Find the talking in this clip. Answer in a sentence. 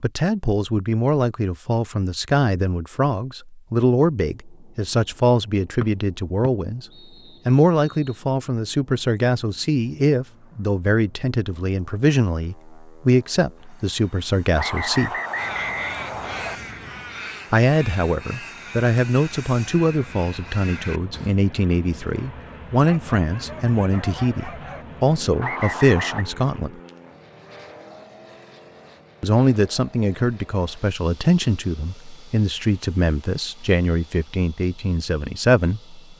You can hear the talking from 0.0 to 6.8 s, from 7.5 to 15.2 s, from 17.5 to 26.7 s and from 29.2 to 36.0 s.